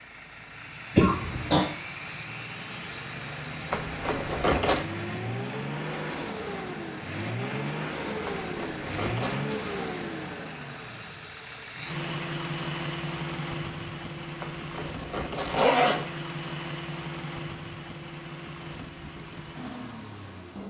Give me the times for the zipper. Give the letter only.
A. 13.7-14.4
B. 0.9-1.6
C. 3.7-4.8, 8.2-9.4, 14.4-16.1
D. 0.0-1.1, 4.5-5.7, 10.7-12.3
C.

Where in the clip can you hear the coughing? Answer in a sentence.
The coughing can be heard from 0.9 to 1.6 s.